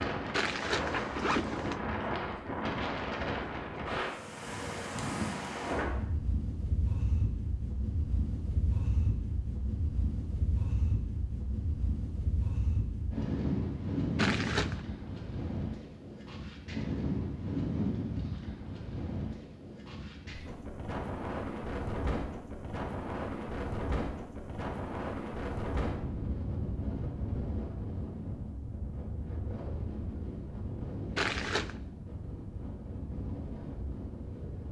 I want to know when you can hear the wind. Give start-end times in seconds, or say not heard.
0.0-34.6.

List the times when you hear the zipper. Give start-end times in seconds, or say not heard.
0.3-1.8, 14.2-14.8, 31.1-31.8.